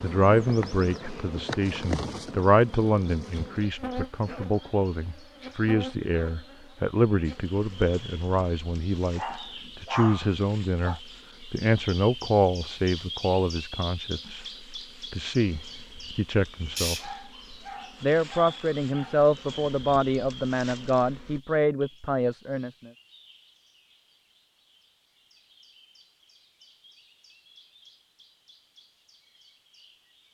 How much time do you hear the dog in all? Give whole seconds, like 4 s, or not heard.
4 s.